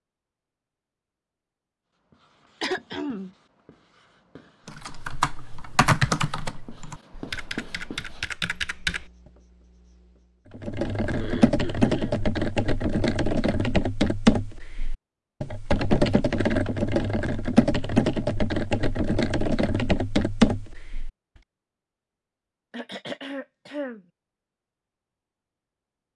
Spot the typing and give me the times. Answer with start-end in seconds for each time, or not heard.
4.7-9.1, 10.5-21.1.